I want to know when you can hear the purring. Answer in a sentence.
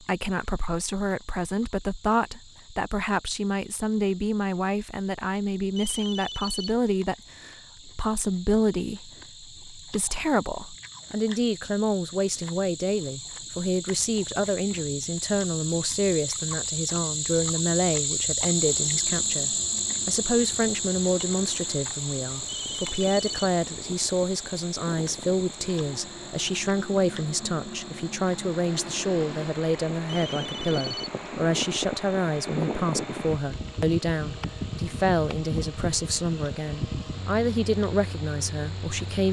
The purring can't be heard in this clip.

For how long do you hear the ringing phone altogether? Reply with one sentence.
The ringing phone can be heard for 3 seconds in total.